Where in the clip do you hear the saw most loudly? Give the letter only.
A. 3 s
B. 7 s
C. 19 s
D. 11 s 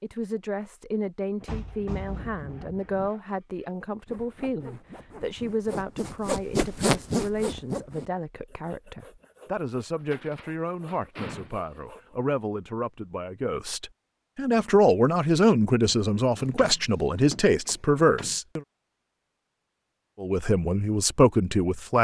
B.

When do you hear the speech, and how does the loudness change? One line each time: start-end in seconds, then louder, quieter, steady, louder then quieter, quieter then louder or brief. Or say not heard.
0.0-18.6 louder
20.2-21.9 brief.